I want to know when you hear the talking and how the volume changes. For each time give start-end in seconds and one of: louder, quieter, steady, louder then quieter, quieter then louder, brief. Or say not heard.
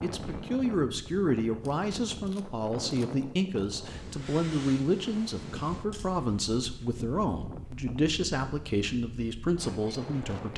0.0-10.5 steady.